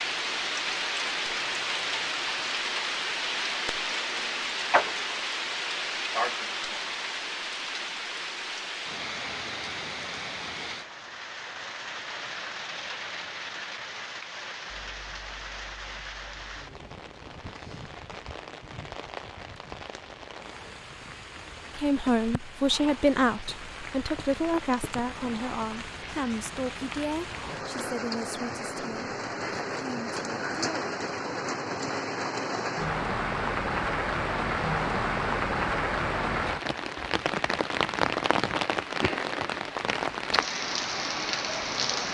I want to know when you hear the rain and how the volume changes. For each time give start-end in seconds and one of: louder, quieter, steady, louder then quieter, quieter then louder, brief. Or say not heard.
0.0-42.0 quieter then louder.